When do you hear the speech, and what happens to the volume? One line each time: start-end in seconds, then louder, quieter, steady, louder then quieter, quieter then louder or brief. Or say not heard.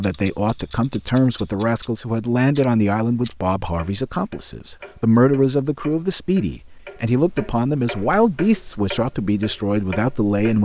0.0-10.5 steady.